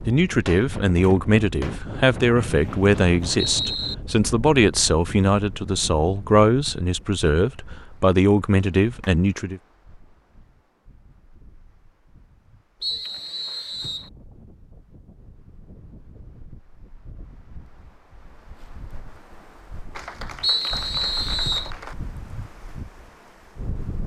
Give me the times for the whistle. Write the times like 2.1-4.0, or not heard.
2.4-4.0, 12.8-14.1, 20.4-21.7.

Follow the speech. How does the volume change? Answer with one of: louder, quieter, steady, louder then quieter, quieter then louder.
steady.